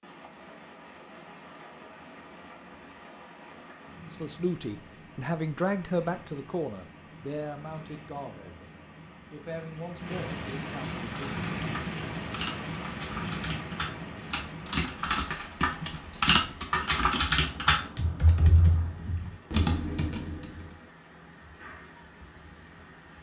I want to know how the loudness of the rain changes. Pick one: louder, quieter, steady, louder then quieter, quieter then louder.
louder then quieter.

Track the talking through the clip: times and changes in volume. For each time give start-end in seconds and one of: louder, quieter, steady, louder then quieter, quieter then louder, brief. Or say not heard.
4.0-11.4 quieter.